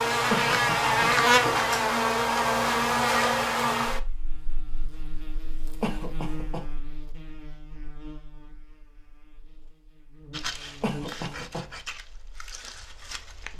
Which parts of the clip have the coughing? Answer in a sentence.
The coughing can be heard from 0.3 to 1.1 s, from 5.8 to 6.7 s and from 10.8 to 11.7 s.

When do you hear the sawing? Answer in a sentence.
The sawing can be heard from 10.3 to 13.5 s.